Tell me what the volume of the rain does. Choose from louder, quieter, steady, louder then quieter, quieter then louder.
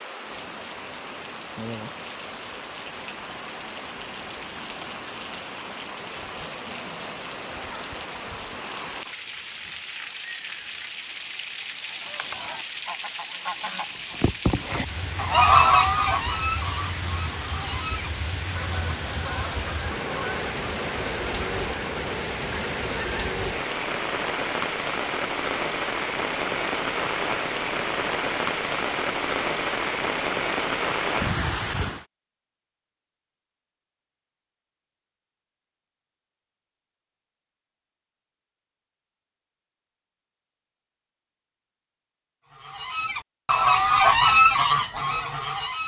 louder.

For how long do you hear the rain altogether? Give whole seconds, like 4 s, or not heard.
32 s.